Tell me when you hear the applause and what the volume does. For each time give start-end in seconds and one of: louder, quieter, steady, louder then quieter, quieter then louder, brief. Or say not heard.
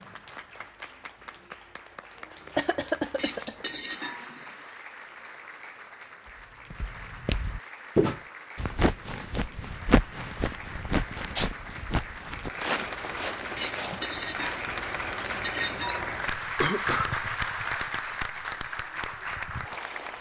0.0-20.1 louder.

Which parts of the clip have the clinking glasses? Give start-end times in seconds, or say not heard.
3.1-4.8, 13.6-16.1.